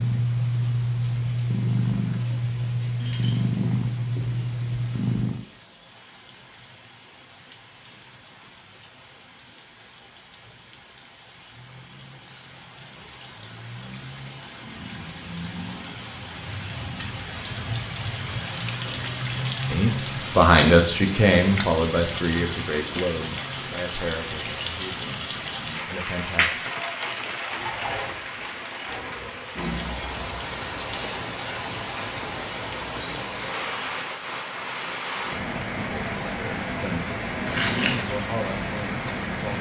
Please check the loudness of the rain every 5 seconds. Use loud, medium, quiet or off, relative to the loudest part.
quiet, quiet, quiet, loud, loud, loud, loud, loud.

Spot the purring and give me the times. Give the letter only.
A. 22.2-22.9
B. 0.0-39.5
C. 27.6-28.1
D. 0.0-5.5
D.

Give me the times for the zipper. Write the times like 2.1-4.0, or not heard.
27.6-28.1.